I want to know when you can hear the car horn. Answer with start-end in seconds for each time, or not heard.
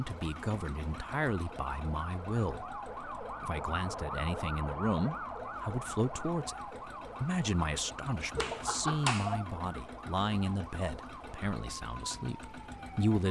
not heard.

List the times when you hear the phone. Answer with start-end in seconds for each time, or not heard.
8.3-9.4.